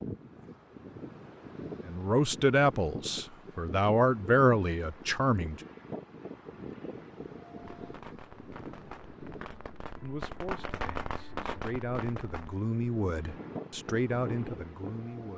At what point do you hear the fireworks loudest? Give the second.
11 s.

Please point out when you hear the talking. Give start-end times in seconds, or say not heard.
1.9-5.6, 10.0-15.3.